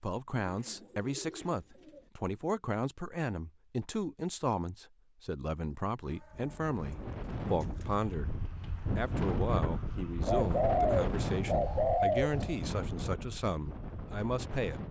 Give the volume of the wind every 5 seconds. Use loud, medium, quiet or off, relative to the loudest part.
off, loud, loud.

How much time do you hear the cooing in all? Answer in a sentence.
The cooing can be heard for 6 seconds in total.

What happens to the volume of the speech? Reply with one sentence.
The loudness of the speech stays about the same.